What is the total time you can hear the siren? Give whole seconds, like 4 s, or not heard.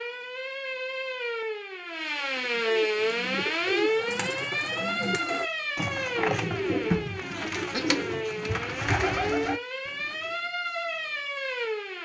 12 s.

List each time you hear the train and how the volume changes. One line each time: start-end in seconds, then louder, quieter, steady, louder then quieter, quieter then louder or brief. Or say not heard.
not heard.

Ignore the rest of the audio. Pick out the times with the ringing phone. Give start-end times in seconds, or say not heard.
not heard.